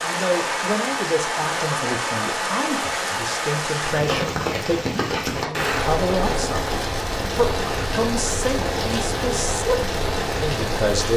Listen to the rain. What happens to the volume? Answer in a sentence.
The loudness of the rain stays about the same.